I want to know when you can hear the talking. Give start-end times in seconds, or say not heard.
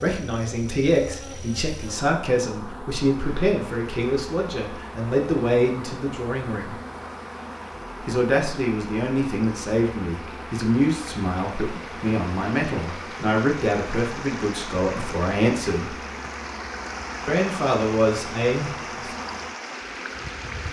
0.0-6.8, 8.1-15.9, 17.2-19.1.